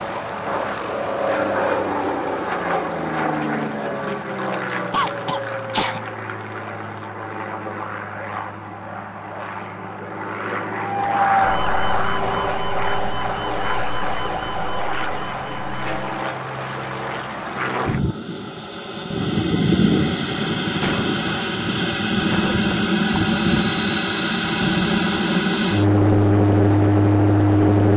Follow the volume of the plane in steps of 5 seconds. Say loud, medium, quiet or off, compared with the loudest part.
medium, quiet, medium, medium, loud, loud.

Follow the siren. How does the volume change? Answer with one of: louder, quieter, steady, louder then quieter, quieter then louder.
quieter.